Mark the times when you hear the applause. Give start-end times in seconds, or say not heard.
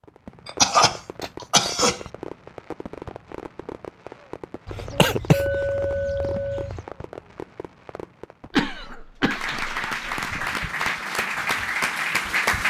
9.2-12.6.